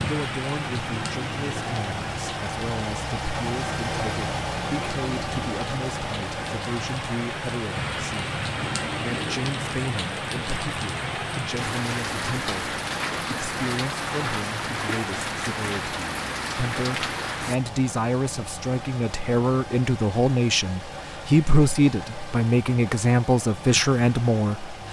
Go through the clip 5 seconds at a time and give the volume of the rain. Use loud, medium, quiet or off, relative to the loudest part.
loud, loud, loud, loud, off.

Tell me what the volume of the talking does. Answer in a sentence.
The volume of the talking goes up.